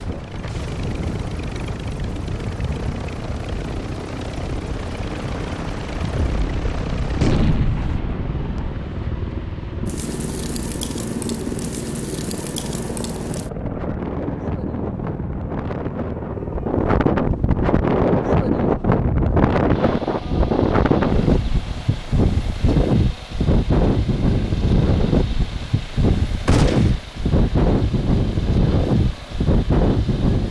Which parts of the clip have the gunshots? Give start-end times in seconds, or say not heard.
6.2-8.8, 26.4-27.0.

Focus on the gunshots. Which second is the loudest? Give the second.
7 s.